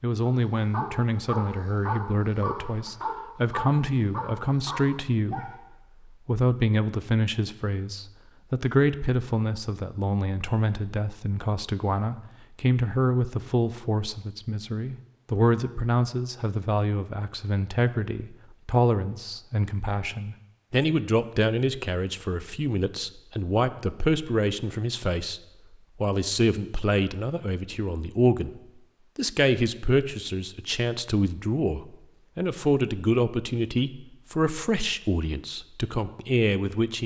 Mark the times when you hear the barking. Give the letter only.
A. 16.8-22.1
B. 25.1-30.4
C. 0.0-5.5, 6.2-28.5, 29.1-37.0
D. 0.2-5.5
D.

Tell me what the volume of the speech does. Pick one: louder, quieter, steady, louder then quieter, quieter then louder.
steady.